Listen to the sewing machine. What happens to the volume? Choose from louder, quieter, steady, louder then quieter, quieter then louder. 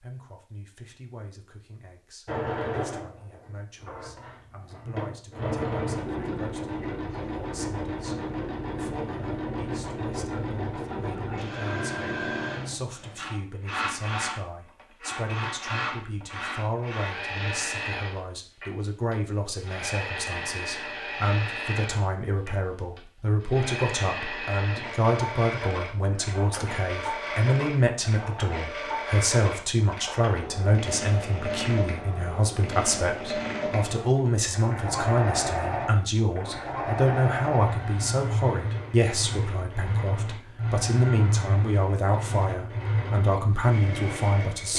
steady.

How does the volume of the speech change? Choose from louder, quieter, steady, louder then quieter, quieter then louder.
louder.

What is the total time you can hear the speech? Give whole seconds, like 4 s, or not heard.
45 s.